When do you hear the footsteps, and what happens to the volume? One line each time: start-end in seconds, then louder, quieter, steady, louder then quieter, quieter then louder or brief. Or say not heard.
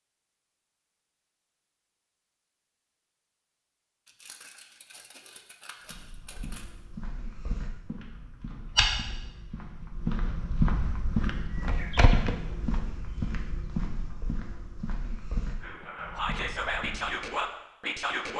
5.8-17.4 louder then quieter.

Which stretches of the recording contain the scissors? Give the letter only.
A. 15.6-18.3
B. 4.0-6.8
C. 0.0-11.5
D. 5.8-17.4
B.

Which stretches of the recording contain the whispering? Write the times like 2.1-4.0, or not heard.
15.6-18.3.